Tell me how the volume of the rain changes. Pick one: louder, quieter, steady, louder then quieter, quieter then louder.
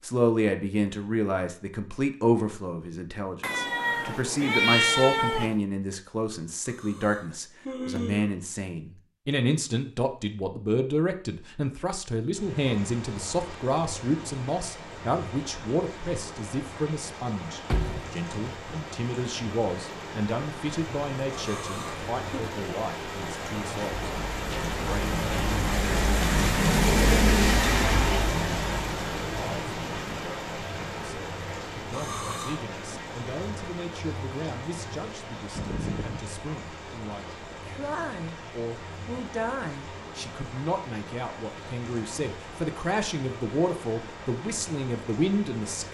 louder then quieter.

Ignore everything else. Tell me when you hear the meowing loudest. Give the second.
5 s.